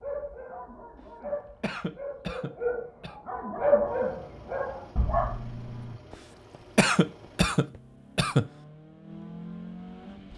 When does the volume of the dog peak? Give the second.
4 s.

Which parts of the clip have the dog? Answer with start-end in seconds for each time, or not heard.
0.0-6.0.